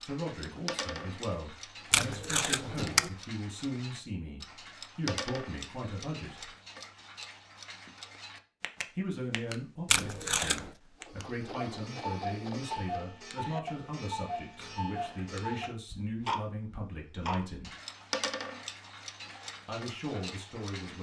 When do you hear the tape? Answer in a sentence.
You can hear the tape from 1.9 to 3.1 s, from 9.8 to 10.7 s and from 14.6 to 15.8 s.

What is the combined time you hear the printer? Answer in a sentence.
You can hear the printer for 2 seconds altogether.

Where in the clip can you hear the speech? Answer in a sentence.
The speech can be heard from 0.0 to 6.5 s, from 8.9 to 17.7 s and from 19.6 to 20.9 s.